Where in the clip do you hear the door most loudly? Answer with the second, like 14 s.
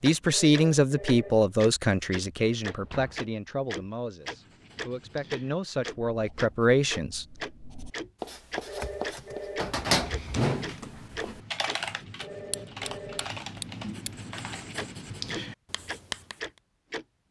10 s.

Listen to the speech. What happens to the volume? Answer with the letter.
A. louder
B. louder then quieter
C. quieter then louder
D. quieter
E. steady
C.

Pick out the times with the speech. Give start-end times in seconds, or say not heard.
0.0-7.2.